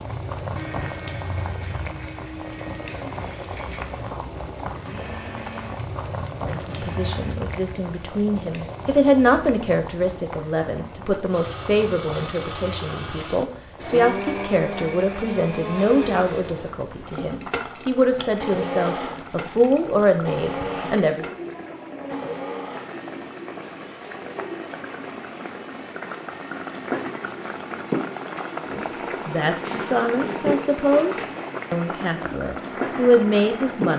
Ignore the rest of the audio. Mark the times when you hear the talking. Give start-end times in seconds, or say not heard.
6.7-21.4, 28.7-33.9.